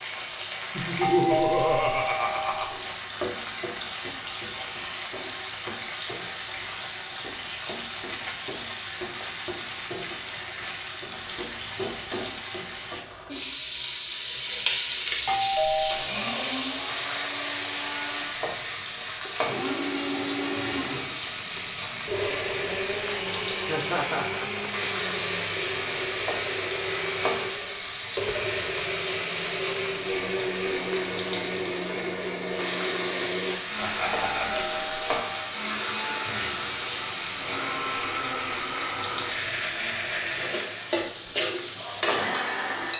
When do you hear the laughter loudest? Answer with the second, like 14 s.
1 s.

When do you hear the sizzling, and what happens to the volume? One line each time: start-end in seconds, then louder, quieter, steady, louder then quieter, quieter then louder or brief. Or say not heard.
0.0-42.9 steady.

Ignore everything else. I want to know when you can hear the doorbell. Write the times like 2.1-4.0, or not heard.
1.0-2.8, 15.2-16.1, 34.5-35.5.